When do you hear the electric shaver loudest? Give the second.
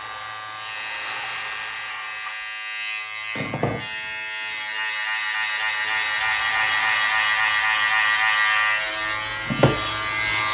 8 s.